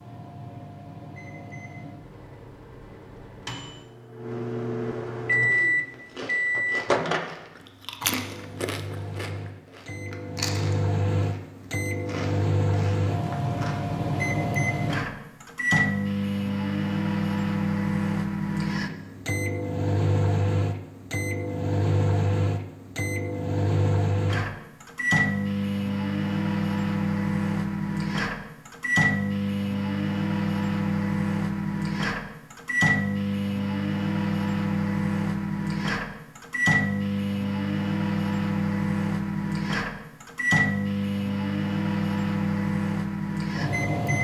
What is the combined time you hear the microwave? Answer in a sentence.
The microwave can be heard for 44 seconds in total.